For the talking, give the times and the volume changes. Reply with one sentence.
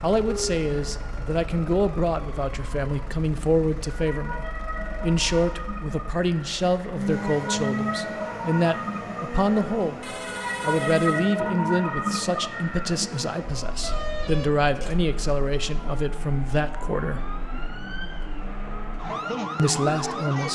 The talking can be heard from 0.0 to 17.2 s, at a steady volume; and briefly from 19.6 to 20.5 s.